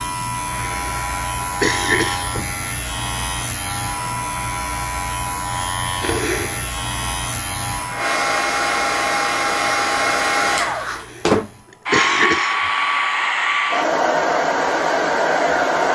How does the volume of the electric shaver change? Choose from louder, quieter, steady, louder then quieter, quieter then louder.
quieter.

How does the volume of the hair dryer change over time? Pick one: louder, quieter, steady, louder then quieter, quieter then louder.
louder.